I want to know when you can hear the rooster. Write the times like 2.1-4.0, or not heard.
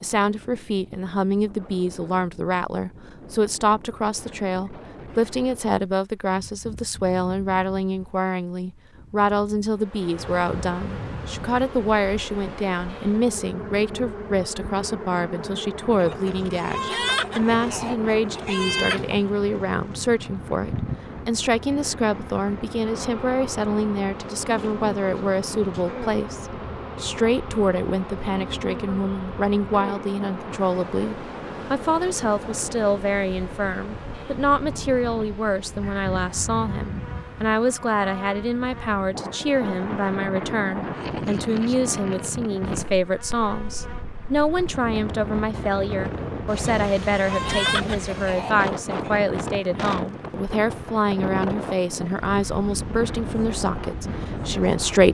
15.9-19.3, 46.5-49.1.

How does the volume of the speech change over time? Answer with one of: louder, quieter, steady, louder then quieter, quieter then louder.
steady.